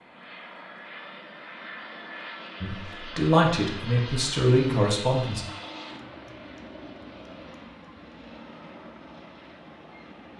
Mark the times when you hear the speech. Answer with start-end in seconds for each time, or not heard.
2.6-5.4.